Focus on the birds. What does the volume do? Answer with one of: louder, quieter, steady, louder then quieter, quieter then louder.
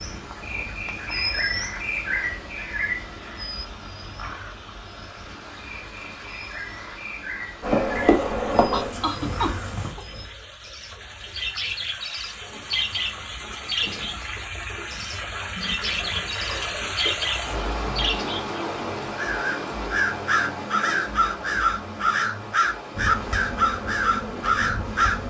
quieter then louder.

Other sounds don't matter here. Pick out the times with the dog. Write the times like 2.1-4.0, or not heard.
not heard.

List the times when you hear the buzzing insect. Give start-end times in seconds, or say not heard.
7.6-9.9, 22.9-25.2.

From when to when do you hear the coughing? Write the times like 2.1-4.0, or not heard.
8.7-10.1.